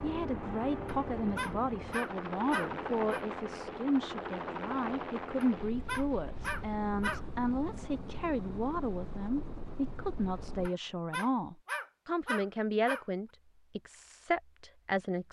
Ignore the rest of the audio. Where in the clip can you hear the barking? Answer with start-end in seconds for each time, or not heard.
0.8-3.2, 5.4-7.2, 10.7-13.1.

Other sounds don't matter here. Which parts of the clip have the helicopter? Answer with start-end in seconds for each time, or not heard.
0.0-10.7.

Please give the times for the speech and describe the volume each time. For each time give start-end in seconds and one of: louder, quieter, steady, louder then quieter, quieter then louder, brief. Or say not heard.
0.0-15.2 steady.